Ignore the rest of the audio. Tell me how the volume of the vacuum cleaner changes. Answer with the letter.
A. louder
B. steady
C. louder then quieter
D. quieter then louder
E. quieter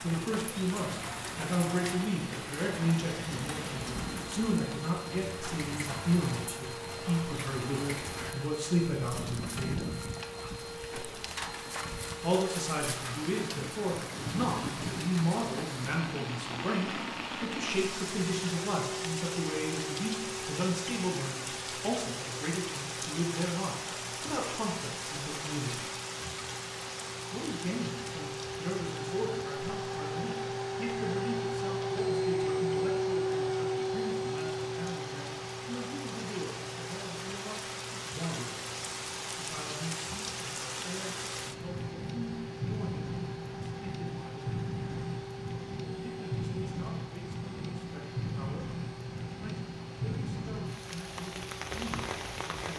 C.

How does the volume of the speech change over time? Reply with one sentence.
The volume of the speech goes down.